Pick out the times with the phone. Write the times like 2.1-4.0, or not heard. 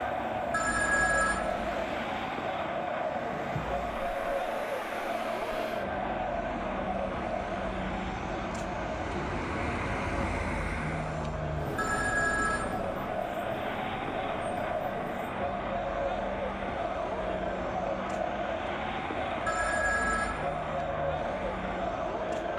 0.5-1.6, 11.8-12.9, 19.4-20.6.